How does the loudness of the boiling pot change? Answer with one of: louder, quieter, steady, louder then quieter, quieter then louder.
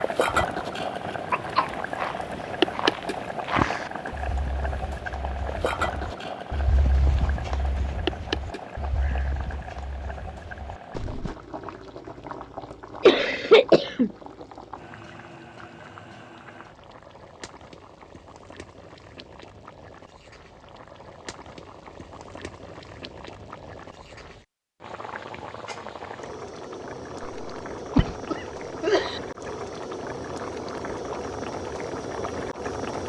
quieter then louder.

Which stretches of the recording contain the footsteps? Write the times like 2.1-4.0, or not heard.
1.4-11.3.